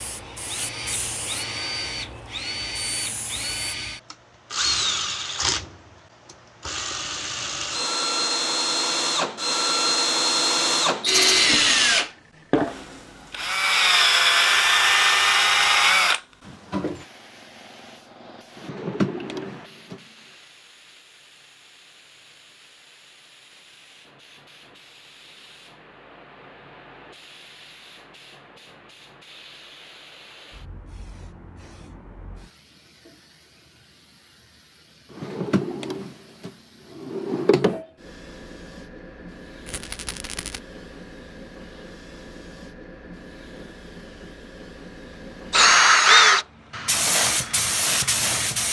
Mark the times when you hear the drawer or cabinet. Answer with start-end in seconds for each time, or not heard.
18.6-20.0, 35.1-37.8.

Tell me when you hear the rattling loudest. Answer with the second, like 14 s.
11 s.